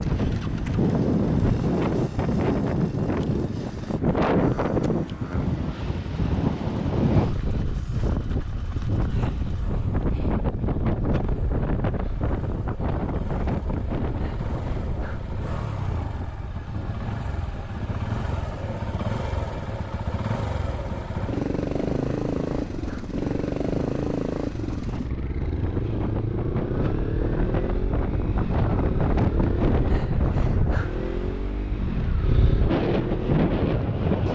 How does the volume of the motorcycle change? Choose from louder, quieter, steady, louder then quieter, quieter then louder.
louder.